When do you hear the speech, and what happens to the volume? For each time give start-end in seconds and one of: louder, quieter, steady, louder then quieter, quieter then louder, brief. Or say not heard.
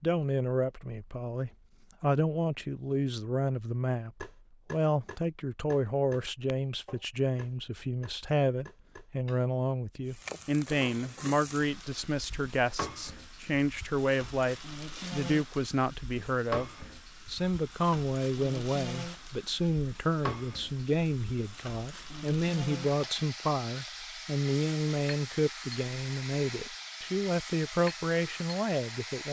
0.0-29.2 steady.